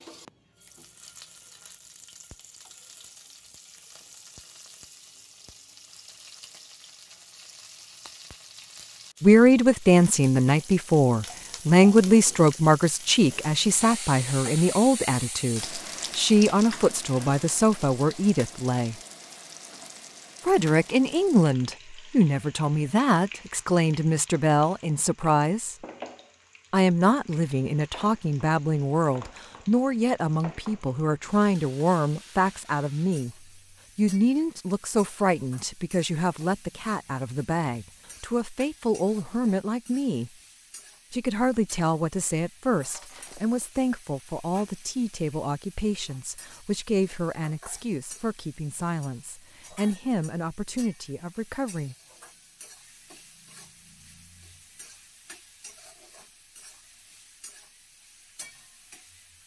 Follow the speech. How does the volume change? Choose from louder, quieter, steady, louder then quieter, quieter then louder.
quieter.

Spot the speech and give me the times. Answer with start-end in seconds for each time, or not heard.
9.2-18.9, 20.4-25.8, 26.7-33.4, 34.0-40.3, 41.1-52.0.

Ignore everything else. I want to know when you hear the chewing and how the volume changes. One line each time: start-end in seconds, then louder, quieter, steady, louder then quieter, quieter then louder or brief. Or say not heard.
not heard.